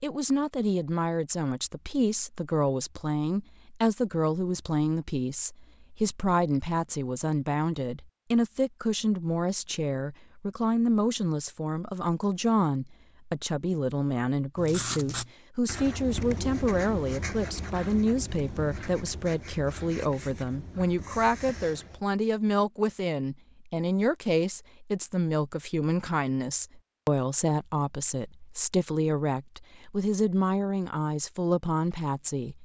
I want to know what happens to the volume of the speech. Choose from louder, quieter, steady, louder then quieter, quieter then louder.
steady.